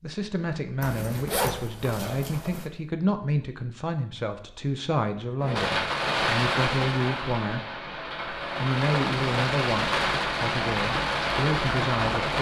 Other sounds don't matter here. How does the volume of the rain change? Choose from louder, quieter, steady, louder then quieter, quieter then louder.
quieter then louder.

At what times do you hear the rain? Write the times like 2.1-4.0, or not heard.
5.4-12.3.